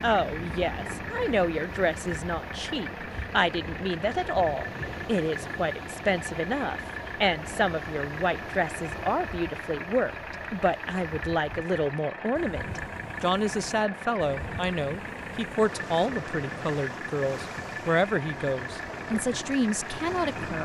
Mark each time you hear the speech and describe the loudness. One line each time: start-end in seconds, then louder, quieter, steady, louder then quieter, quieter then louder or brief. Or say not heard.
0.0-20.6 steady.